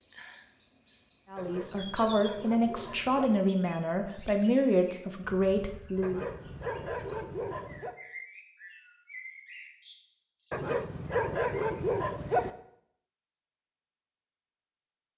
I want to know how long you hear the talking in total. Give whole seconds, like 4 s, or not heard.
5 s.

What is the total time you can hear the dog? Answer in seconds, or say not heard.
6 s.